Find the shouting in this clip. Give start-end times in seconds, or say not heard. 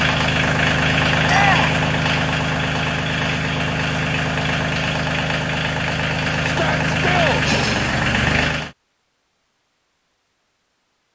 1.2-1.8, 6.4-7.5.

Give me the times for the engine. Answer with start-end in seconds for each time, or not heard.
0.0-8.7.